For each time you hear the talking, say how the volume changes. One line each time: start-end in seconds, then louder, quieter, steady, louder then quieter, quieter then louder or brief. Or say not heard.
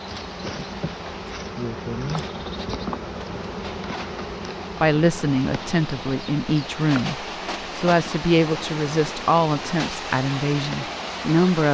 4.8-11.6 steady.